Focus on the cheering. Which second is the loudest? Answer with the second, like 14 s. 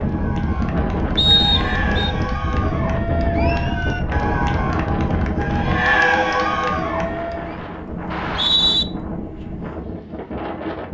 6 s.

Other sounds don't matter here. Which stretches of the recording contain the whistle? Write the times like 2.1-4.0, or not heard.
1.1-2.1, 8.1-8.8.